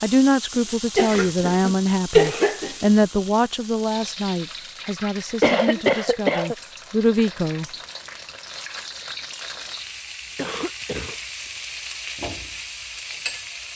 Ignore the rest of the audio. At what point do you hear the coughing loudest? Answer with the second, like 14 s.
2 s.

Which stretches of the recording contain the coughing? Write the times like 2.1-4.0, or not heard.
0.9-2.9, 5.4-6.5, 10.3-11.2.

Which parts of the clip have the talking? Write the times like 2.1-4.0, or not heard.
0.0-7.7.